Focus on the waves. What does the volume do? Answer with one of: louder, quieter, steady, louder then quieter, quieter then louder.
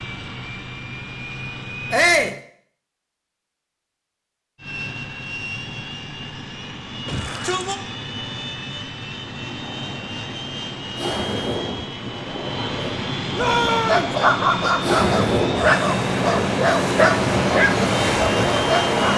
louder.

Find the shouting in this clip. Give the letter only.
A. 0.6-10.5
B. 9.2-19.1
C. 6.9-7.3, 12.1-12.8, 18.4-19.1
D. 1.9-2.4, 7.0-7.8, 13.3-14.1
D.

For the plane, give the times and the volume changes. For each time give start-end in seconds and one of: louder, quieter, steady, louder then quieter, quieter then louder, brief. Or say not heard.
0.0-2.4 brief
4.5-19.1 louder.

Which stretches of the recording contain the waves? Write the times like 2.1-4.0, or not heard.
9.2-19.1.